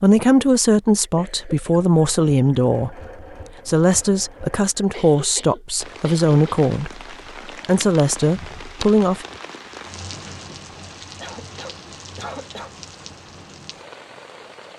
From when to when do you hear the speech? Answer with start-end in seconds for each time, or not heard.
0.0-3.0, 3.6-9.2.